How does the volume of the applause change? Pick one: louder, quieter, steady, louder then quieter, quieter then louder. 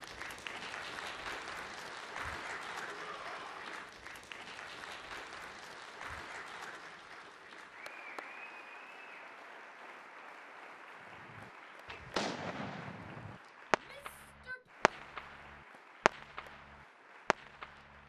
quieter.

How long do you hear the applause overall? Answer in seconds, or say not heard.
18 s.